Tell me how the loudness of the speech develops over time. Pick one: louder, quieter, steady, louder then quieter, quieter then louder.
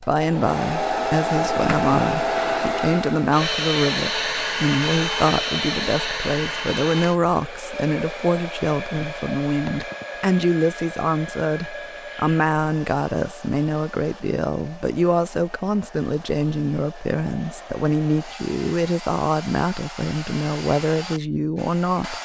steady.